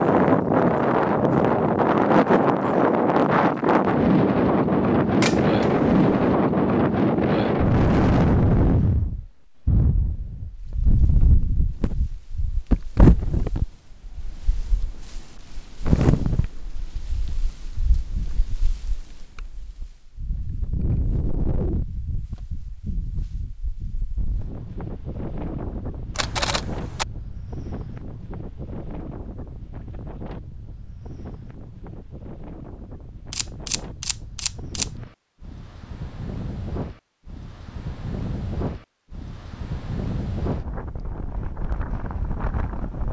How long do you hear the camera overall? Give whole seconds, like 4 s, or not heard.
4 s.